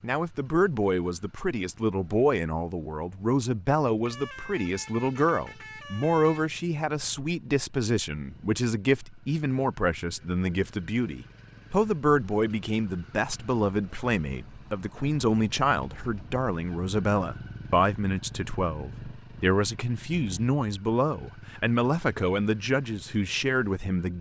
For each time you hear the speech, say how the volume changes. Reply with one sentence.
The speech can be heard from 0.0 to 24.1 s, at a steady volume.